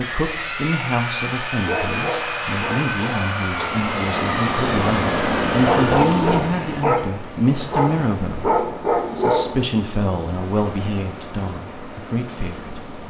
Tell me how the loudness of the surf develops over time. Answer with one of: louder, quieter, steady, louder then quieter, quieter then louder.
quieter.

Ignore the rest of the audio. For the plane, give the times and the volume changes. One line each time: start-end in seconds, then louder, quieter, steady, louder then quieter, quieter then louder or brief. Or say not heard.
0.0-5.8 steady.